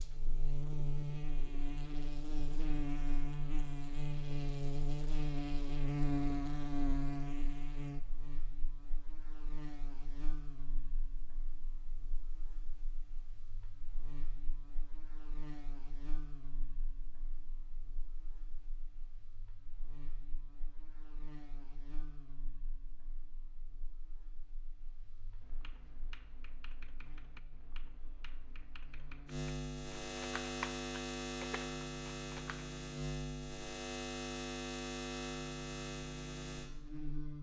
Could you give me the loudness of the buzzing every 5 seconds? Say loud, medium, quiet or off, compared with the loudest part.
loud, loud, quiet, quiet, quiet, medium, loud, loud.